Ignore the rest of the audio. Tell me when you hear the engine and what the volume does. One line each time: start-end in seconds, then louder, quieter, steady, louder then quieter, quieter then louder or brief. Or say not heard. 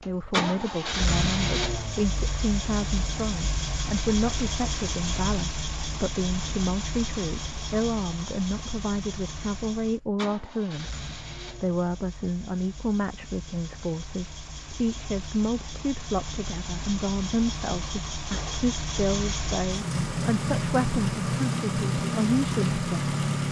0.0-23.4 quieter then louder.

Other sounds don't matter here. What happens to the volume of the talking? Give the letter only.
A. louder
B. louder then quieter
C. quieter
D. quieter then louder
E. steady
E.